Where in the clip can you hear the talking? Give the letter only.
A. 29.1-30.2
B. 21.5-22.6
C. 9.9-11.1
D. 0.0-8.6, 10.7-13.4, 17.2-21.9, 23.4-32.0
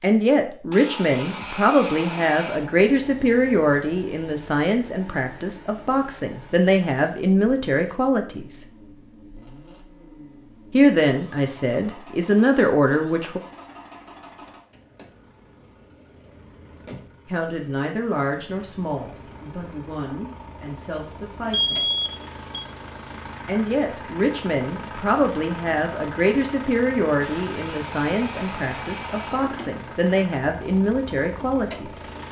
D.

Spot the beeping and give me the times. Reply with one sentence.
You can hear the beeping from 21.5 to 22.6 s.